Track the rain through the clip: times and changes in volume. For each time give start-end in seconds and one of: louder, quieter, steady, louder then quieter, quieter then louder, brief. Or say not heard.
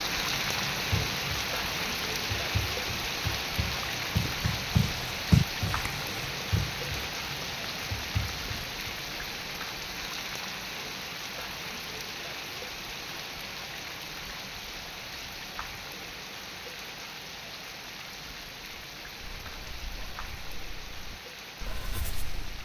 0.0-22.6 quieter.